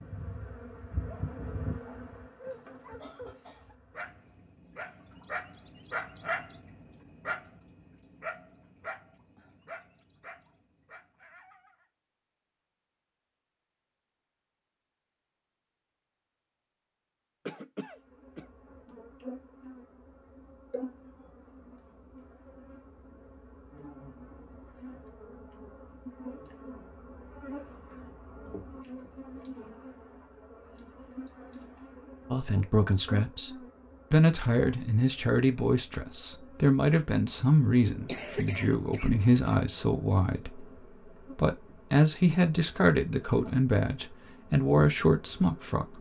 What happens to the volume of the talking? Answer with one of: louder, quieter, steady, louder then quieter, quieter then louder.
steady.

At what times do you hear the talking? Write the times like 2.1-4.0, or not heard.
32.3-45.9.